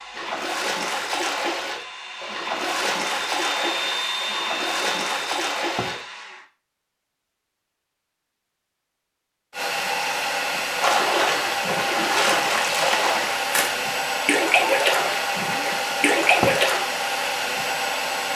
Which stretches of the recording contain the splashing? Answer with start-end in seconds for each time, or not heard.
0.1-6.0, 10.8-16.8.